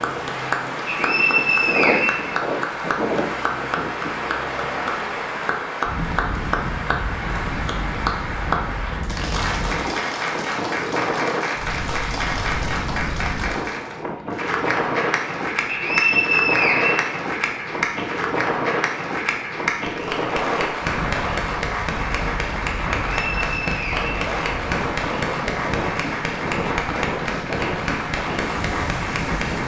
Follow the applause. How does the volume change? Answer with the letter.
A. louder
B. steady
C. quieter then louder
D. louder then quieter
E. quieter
B.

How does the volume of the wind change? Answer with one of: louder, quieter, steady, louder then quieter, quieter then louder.
steady.